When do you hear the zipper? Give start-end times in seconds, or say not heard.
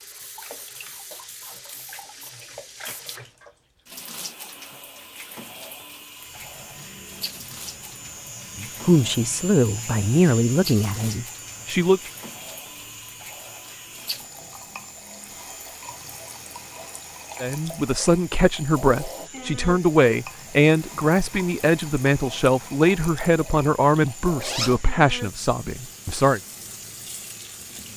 24.4-24.9.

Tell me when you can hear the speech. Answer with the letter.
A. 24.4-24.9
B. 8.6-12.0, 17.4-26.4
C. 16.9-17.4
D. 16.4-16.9
B.